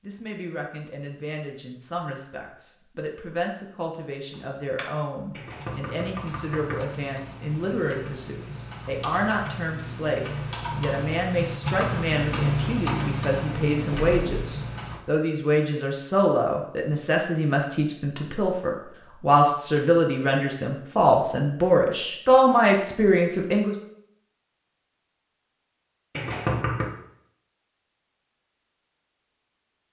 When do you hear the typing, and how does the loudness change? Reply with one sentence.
The typing can be heard briefly from 4.3 to 5.0 s; and from 5.5 to 15.0 s, getting louder.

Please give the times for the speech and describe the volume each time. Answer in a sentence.
You can hear the speech from 0.0 to 23.8 s, getting louder.